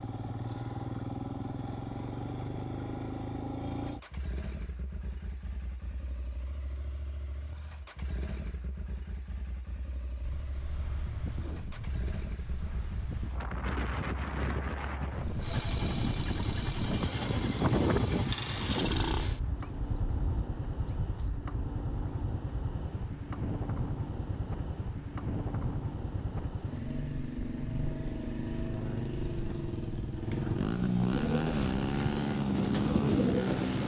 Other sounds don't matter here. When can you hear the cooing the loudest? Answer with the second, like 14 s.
33 s.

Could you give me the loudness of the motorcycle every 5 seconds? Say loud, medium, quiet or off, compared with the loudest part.
medium, quiet, quiet, medium, medium, medium, loud.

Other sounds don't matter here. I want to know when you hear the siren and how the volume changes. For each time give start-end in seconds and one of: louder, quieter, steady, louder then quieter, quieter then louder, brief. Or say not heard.
not heard.